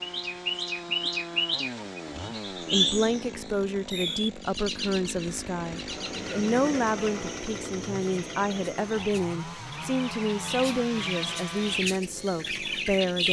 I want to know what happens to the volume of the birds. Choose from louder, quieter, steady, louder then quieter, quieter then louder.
quieter then louder.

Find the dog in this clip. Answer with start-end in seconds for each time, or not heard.
not heard.